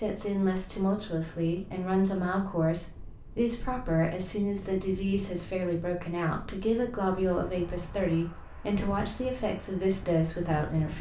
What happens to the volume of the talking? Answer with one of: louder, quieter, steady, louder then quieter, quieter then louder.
steady.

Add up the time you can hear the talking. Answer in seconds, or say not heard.
11 s.